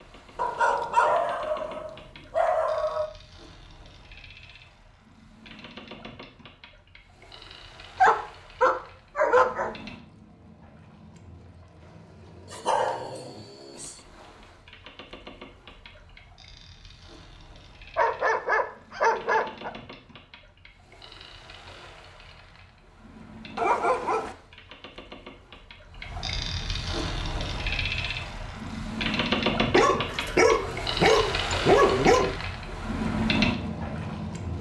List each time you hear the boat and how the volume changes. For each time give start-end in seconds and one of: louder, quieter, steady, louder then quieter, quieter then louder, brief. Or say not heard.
0.0-34.5 louder.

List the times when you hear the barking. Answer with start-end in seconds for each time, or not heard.
0.3-3.1, 8.0-9.7, 12.5-13.9, 17.9-19.7, 23.6-24.4, 29.7-32.4.